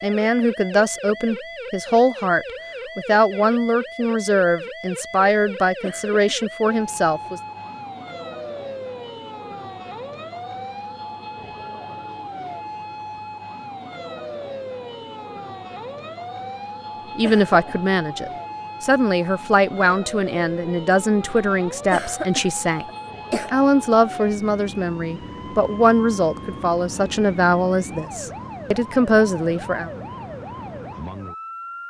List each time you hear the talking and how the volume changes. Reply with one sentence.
You can hear the talking from 0.0 to 7.4 s, at a steady volume; and from 17.1 to 29.9 s, at a steady volume.